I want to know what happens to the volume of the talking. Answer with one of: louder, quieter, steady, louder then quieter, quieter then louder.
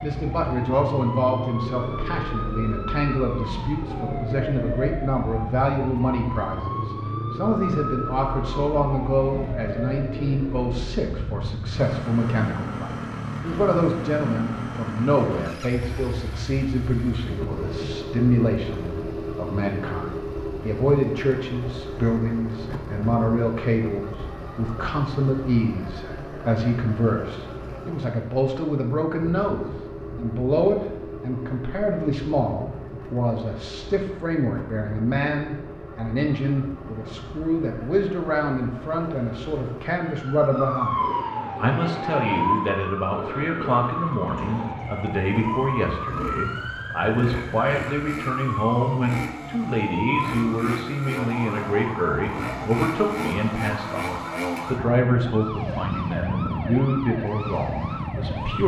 steady.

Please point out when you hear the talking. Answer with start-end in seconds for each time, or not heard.
0.0-58.6.